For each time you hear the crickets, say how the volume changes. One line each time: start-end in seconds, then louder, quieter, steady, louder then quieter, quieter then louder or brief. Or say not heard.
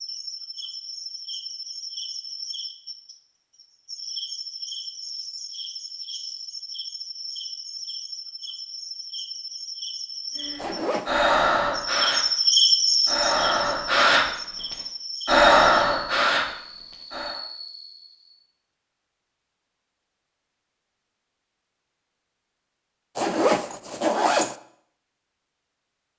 0.0-18.4 louder then quieter.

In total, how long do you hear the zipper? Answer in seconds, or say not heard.
2 s.